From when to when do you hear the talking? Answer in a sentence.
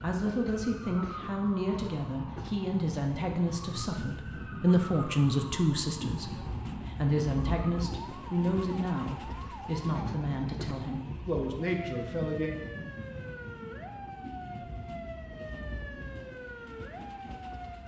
The talking can be heard from 0.0 to 12.6 s.